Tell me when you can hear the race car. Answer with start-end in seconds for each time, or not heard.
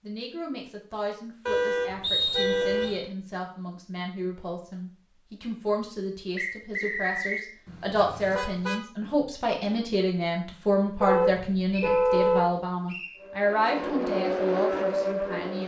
13.2-15.6.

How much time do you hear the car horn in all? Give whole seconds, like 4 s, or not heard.
4 s.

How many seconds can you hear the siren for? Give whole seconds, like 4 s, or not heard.
not heard.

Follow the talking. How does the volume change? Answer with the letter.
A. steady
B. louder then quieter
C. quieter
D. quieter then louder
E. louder
E.